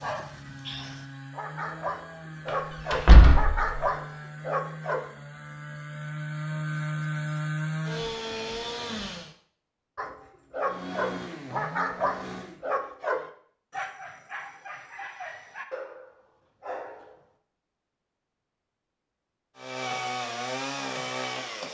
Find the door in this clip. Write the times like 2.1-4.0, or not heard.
2.5-3.7.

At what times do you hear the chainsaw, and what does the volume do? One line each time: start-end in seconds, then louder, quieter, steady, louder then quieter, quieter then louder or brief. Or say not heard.
0.0-9.3 louder
10.6-12.6 brief
19.6-21.6 brief.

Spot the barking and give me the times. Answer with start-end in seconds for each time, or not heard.
0.0-5.1, 9.9-17.2.